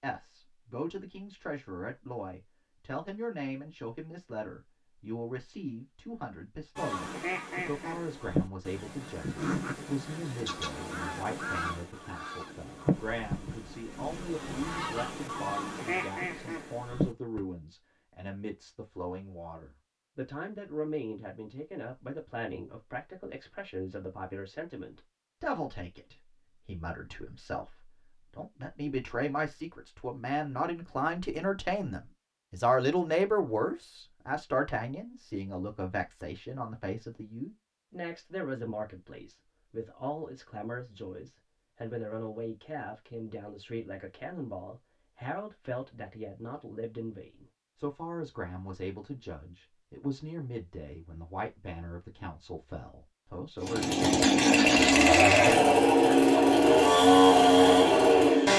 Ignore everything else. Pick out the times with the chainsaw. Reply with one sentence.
The chainsaw can be heard from 53.6 to 58.5 s.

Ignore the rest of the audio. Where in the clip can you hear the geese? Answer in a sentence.
You can hear the geese from 6.8 to 17.4 s.